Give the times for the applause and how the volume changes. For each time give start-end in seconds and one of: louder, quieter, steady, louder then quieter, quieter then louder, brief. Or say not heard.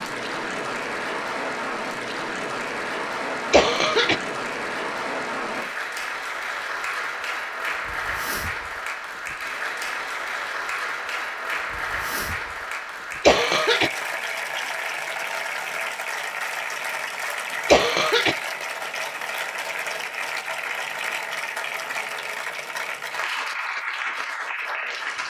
0.0-25.2 steady.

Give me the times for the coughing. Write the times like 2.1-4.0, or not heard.
3.5-4.2, 13.2-13.9, 17.6-18.4.